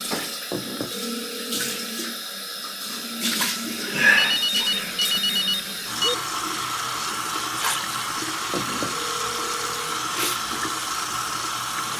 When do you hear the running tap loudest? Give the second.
4 s.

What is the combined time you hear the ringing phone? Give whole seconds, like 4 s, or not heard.
5 s.